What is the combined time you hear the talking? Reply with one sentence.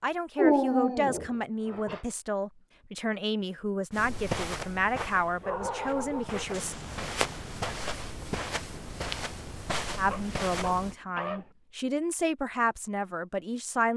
The talking can be heard for 11 seconds in total.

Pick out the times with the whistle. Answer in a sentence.
The whistle can't be heard in this clip.